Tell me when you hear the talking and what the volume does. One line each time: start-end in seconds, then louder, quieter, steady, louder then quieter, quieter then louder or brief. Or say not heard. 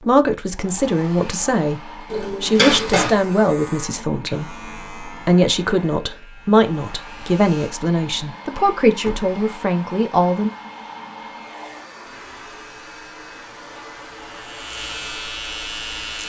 0.1-1.8 brief
2.4-10.5 steady.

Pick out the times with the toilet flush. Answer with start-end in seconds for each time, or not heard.
2.1-3.2.